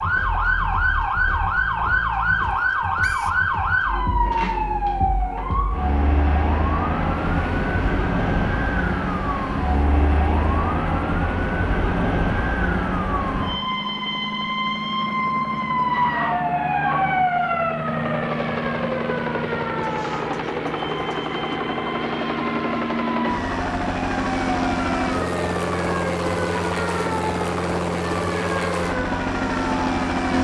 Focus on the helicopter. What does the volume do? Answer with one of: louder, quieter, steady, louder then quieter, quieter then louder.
louder.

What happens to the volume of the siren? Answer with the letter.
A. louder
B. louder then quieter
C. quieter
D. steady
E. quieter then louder
C.